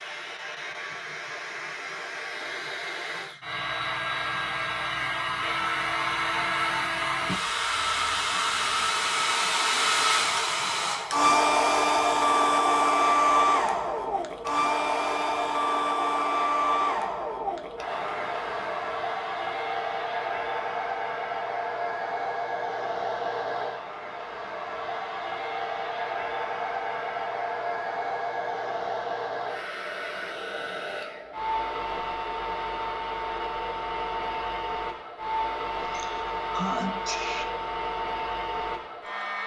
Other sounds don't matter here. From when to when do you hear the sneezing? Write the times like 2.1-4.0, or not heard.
35.8-37.5.